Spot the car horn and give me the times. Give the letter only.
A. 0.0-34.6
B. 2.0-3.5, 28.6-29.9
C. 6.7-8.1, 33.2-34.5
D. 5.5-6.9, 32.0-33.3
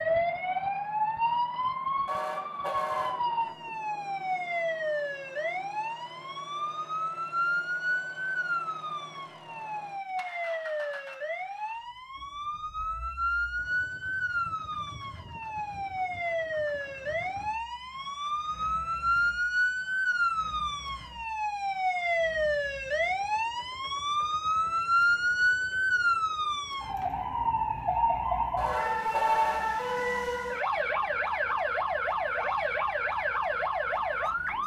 B.